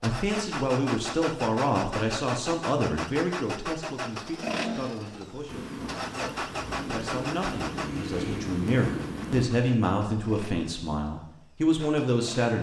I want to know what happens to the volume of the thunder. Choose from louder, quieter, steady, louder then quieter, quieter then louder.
louder.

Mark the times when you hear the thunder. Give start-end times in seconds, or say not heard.
5.5-9.5.